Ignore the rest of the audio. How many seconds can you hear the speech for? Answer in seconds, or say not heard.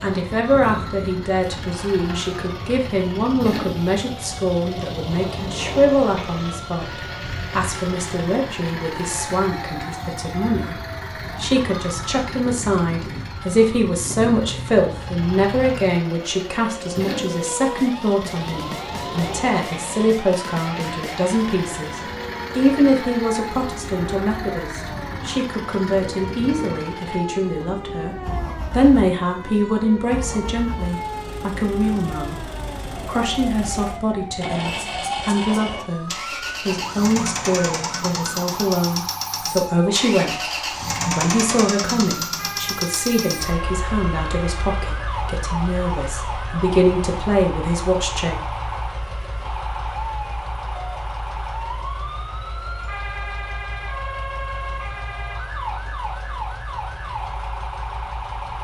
47 s.